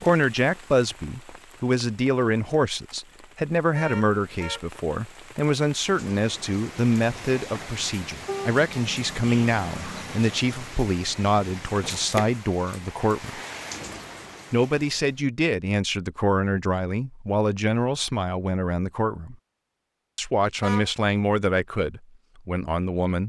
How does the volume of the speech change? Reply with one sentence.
The volume of the speech stays about the same.